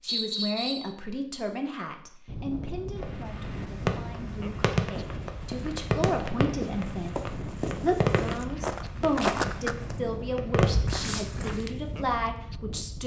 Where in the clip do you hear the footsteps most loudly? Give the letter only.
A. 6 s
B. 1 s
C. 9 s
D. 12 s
C.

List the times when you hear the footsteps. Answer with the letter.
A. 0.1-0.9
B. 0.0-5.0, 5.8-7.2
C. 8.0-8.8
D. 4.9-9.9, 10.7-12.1
D.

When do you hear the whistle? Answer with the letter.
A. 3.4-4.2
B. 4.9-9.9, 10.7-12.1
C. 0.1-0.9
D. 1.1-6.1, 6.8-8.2
C.